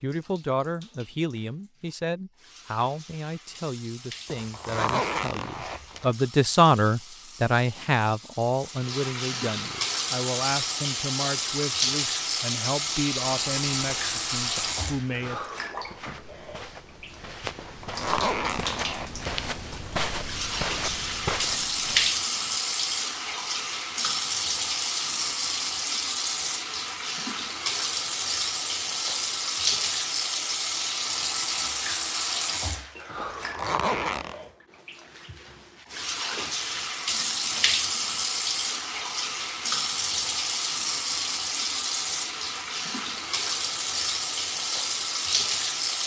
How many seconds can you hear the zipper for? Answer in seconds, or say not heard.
5 s.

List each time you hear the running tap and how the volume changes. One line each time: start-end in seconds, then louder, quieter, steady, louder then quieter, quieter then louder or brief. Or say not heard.
0.0-46.0 louder.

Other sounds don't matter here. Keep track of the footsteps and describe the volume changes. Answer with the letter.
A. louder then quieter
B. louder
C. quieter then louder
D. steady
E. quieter
B.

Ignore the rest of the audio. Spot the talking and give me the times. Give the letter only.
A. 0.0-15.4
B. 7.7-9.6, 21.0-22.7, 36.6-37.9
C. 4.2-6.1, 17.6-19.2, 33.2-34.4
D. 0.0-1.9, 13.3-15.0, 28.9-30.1
A.